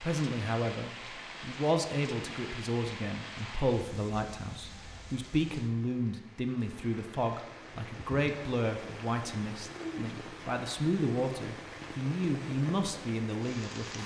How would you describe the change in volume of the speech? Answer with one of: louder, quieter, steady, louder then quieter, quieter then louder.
steady.